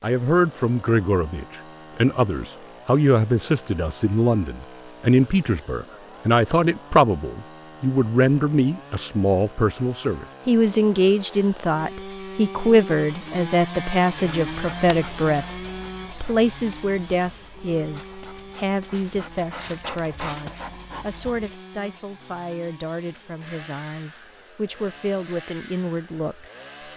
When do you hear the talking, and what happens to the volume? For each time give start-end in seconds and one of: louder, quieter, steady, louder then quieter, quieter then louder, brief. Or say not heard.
0.0-26.4 quieter.